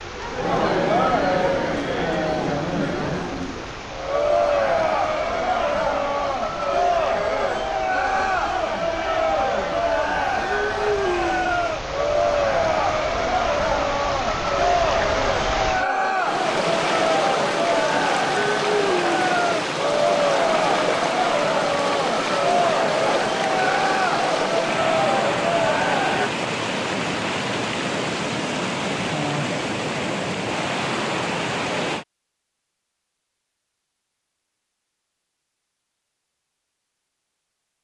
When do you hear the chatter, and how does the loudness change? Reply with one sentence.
You can hear the chatter from 0.0 to 26.3 s, at a steady volume.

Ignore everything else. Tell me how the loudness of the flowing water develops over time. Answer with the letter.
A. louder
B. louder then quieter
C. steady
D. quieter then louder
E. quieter
A.